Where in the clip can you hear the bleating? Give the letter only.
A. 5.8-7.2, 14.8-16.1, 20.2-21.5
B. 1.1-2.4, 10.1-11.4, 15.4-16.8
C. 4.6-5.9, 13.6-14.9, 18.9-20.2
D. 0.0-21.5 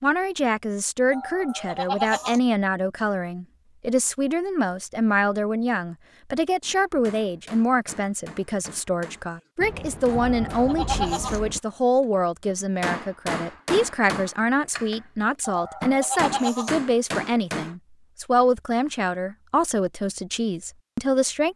B.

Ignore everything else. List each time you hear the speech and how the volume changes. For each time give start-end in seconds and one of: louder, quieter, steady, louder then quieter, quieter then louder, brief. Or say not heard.
0.0-21.5 steady.